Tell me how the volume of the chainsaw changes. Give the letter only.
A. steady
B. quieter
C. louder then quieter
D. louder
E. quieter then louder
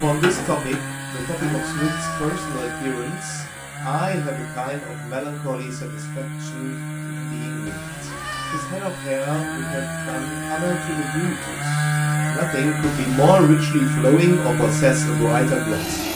D.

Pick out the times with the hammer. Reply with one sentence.
The hammer can be heard from 0.0 to 1.6 s.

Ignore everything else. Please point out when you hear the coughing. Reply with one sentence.
You can't hear the coughing here.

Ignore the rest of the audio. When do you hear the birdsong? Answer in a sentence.
You can't hear the birdsong here.